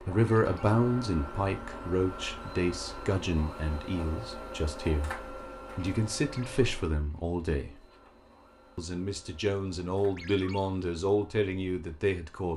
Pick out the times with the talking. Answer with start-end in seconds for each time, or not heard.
0.0-7.8, 8.8-12.5.